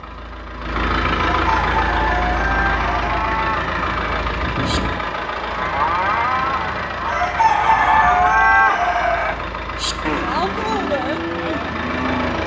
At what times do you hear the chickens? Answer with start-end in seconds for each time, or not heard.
1.4-3.1, 7.0-9.4.